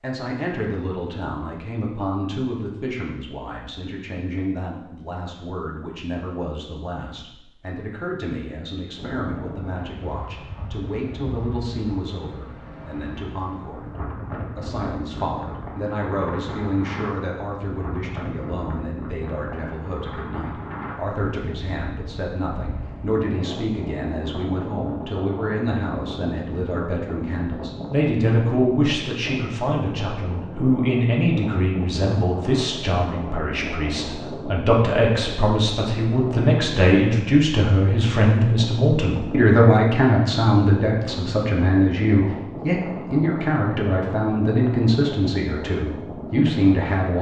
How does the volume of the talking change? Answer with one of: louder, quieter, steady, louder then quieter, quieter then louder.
louder.